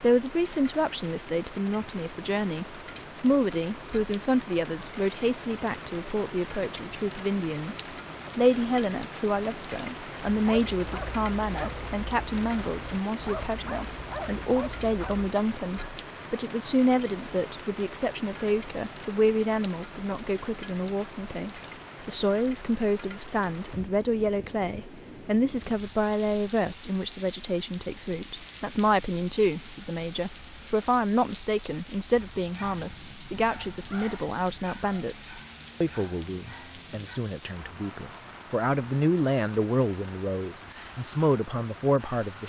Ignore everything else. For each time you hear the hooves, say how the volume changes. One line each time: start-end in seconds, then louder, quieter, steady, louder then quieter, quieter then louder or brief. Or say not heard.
not heard.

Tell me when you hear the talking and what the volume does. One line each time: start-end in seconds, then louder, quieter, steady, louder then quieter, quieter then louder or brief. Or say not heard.
0.0-42.4 steady.